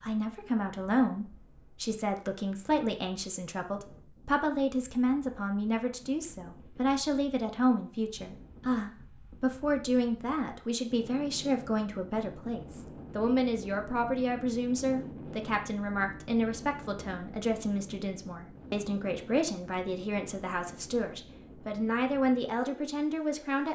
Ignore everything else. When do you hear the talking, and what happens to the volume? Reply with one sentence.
You can hear the talking from 0.0 to 23.7 s, at a steady volume.